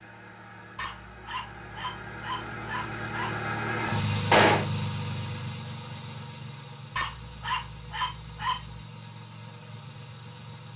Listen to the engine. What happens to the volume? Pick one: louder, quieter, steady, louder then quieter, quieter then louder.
louder then quieter.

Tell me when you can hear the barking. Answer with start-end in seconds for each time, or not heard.
0.8-3.4, 7.0-8.8.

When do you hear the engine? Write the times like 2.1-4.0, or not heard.
0.0-10.7.